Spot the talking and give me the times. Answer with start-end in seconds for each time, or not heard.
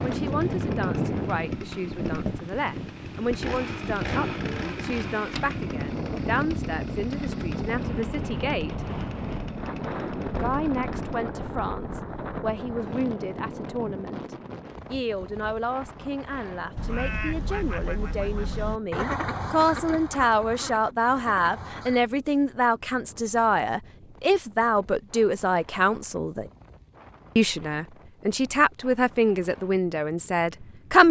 0.0-8.9, 10.4-26.5, 27.4-31.0.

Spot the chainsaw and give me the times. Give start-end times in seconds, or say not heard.
0.0-11.3.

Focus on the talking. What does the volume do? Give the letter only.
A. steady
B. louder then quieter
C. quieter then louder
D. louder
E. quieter
D.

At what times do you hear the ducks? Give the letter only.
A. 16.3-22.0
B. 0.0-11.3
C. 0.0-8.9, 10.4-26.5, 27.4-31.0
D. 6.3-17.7
A.